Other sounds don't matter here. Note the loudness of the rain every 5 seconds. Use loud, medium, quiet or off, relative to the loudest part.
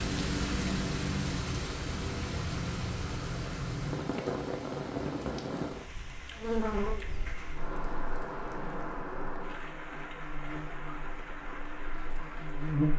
loud, medium, medium.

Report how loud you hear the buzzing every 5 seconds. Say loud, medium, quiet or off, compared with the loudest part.
off, loud, loud.